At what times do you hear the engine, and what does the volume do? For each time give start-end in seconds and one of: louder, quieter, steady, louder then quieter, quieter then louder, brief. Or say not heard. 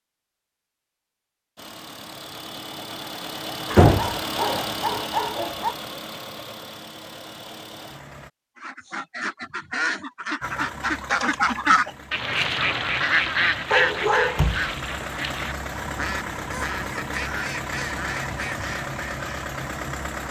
1.6-8.3 louder then quieter
10.4-20.2 louder.